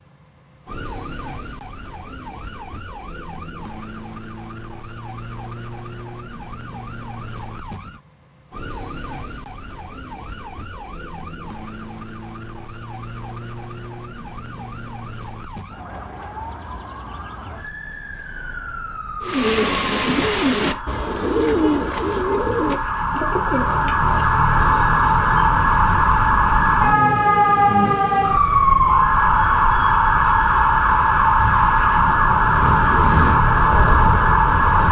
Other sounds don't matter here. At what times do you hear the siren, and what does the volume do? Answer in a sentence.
The siren can be heard from 0.0 to 34.8 s, getting louder.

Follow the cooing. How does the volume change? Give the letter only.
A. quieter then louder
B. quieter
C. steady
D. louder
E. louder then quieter
B.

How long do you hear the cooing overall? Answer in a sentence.
The cooing can be heard for 6 seconds in total.